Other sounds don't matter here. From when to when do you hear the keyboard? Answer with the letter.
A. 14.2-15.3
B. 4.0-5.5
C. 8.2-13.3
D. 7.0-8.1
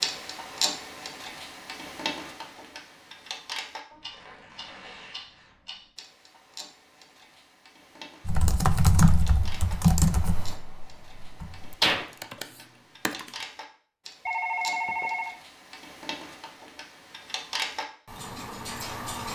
C.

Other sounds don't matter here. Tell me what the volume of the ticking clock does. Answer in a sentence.
The loudness of the ticking clock goes down, then up.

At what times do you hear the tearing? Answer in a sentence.
The tearing can be heard from 4.0 to 5.5 s.